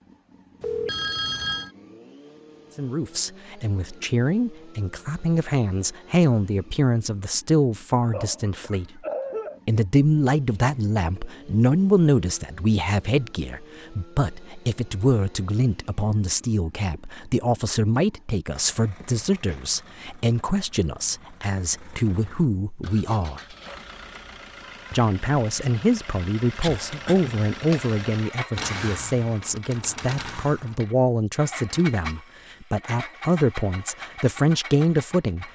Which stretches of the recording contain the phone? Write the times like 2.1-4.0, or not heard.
0.6-1.7.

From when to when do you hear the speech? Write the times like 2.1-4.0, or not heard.
2.8-9.0, 9.7-23.4, 24.9-35.5.